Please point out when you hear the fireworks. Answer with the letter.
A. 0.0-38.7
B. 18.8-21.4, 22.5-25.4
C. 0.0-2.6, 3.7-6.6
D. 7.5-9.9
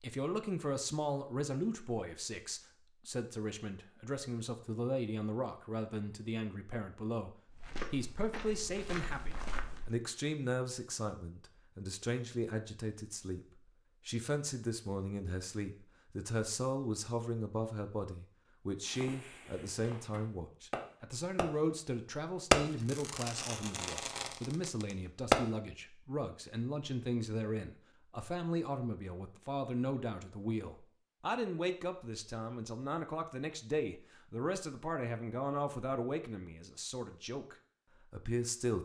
B.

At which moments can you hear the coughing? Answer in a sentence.
You can't hear the coughing here.